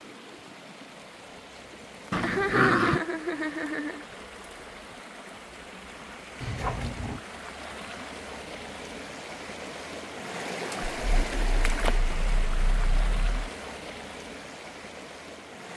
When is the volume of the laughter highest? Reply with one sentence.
The loudest moment of the laughter is at 3 seconds.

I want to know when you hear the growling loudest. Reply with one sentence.
The loudest moment of the growling is at 3 seconds.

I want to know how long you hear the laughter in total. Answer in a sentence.
You can hear the laughter for 2 seconds altogether.